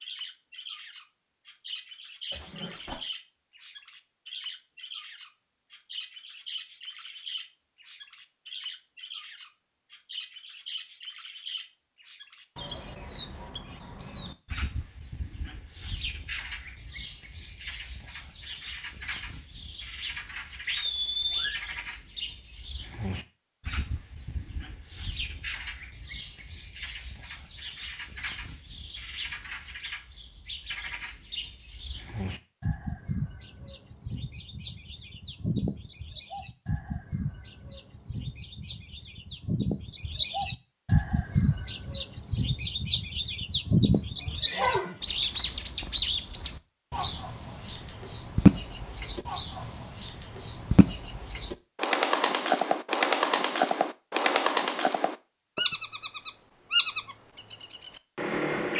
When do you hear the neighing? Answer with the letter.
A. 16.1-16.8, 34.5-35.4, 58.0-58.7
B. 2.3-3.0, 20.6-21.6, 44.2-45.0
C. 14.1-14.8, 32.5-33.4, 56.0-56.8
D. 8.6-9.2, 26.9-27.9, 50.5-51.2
B.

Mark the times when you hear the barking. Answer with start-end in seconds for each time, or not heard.
not heard.